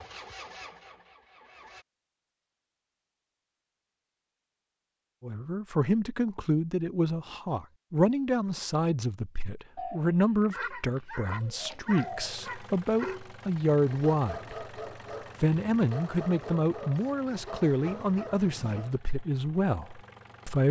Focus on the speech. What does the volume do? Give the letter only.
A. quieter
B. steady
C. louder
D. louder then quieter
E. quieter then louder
B.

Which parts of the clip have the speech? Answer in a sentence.
You can hear the speech from 5.2 to 14.7 s and from 15.4 to 20.6 s.